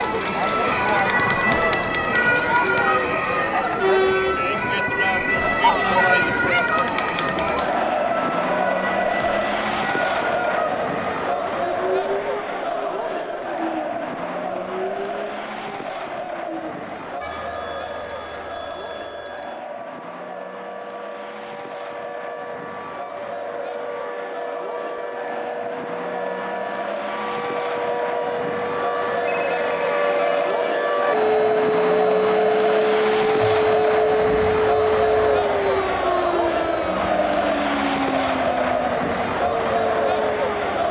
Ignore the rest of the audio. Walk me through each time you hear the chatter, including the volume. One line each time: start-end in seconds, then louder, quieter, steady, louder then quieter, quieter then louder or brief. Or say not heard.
0.0-40.8 quieter then louder.